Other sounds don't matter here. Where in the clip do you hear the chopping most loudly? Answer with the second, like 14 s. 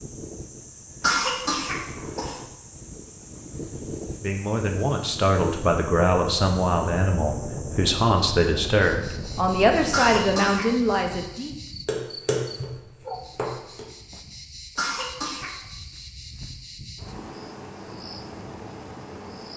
12 s.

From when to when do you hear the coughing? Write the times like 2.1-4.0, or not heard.
1.0-2.4, 9.9-10.8, 14.8-15.6.